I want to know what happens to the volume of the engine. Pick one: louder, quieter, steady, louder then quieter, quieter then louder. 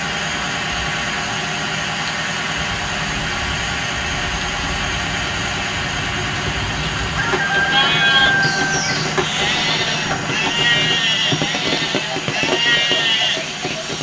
quieter.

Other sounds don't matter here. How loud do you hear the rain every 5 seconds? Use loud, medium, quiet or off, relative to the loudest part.
medium, loud, loud.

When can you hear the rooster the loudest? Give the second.
8 s.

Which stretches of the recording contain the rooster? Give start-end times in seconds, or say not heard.
7.0-8.9.